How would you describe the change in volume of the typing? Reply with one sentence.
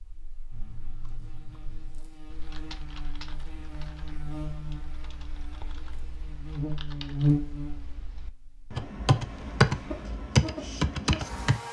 The loudness of the typing goes up.